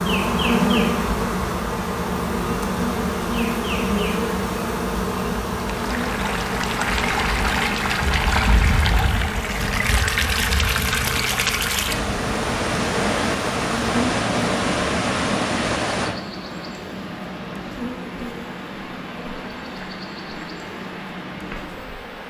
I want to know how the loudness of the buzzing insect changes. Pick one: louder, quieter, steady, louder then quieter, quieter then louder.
quieter.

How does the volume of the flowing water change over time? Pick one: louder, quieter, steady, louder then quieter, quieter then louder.
quieter.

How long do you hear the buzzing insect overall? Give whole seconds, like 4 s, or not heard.
22 s.